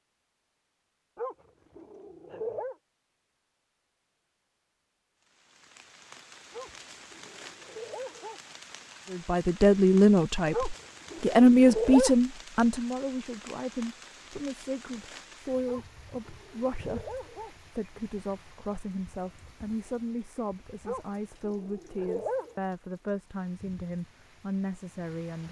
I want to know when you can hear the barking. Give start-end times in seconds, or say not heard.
1.1-2.8, 6.5-8.4, 10.5-12.2, 15.7-17.6, 20.9-22.6.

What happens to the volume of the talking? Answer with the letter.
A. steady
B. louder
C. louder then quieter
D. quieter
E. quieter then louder
D.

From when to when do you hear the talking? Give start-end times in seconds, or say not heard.
9.1-25.4.